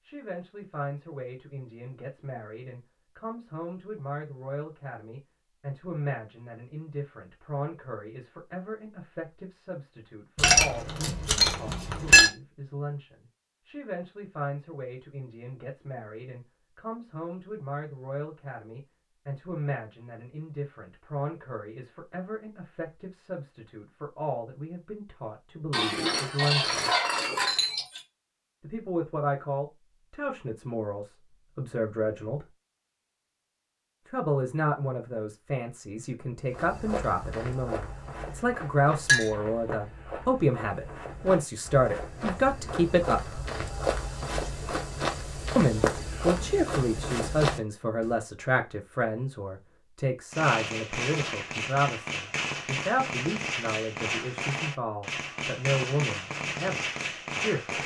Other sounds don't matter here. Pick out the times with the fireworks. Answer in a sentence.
The fireworks can be heard from 50.3 to 57.8 s.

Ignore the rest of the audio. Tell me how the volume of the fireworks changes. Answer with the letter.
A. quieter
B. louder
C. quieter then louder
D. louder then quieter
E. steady
E.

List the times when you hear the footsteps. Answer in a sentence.
You can hear the footsteps from 36.5 to 48.1 s.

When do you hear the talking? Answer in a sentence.
You can hear the talking from 0.1 to 26.9 s, from 28.6 to 32.5 s, from 34.0 to 43.4 s and from 45.5 to 57.8 s.